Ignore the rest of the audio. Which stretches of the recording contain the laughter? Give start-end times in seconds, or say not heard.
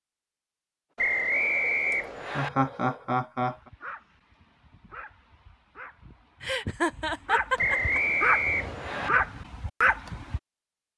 1.9-3.5, 6.4-8.0.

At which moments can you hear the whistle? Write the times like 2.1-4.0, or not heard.
0.9-2.5, 7.5-9.1.